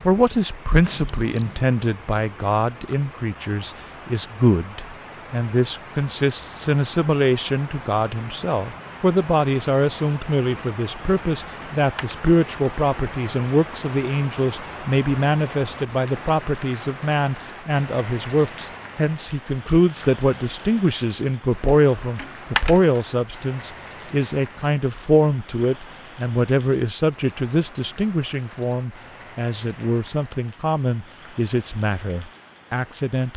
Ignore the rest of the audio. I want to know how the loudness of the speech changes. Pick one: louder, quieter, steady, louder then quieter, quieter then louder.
steady.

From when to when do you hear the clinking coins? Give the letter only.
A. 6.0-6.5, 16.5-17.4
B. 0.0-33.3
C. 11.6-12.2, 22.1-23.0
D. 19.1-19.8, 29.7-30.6
C.